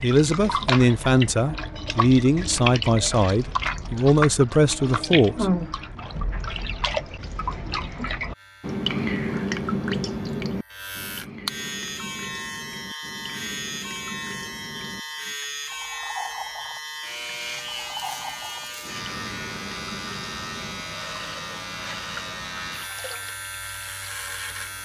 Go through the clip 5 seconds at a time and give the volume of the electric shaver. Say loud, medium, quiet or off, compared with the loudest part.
off, quiet, loud, loud, loud.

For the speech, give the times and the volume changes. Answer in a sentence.
You can hear the speech from 0.0 to 5.5 s, at a steady volume.